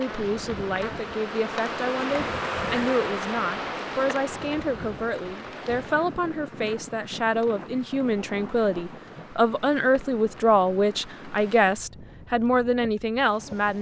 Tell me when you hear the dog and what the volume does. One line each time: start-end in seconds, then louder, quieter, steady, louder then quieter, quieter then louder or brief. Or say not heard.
not heard.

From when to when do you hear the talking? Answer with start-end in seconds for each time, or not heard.
0.0-13.7.